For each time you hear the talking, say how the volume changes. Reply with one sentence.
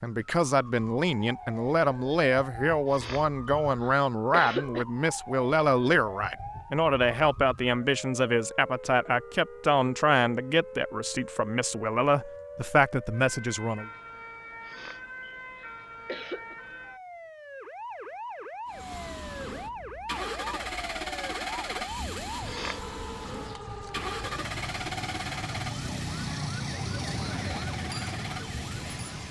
You can hear the talking from 0.0 to 13.9 s, at a steady volume.